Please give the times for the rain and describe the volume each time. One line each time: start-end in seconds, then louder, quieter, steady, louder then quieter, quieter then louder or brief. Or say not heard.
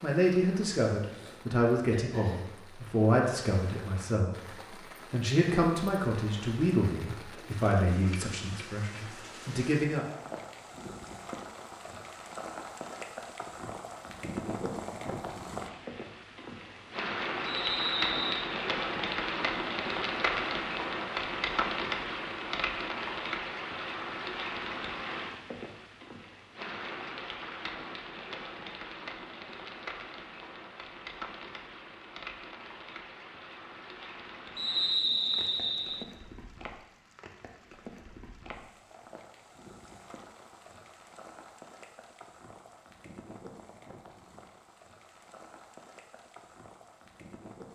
0.0-47.6 louder then quieter.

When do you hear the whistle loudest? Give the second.
35 s.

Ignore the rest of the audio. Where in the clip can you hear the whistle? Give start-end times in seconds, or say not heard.
17.4-18.5, 34.5-36.0.